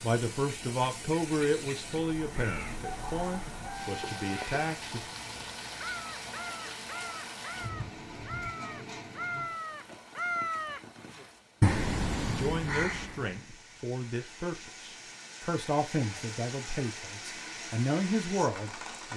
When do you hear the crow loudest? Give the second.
12 s.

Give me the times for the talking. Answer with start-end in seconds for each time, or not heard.
0.0-5.0, 12.2-19.1.